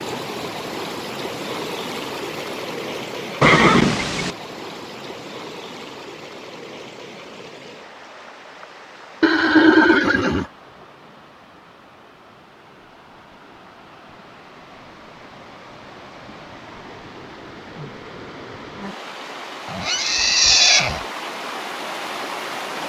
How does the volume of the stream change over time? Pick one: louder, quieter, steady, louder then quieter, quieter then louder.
quieter then louder.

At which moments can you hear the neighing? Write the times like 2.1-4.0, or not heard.
3.4-4.3, 9.2-10.4, 19.7-21.0.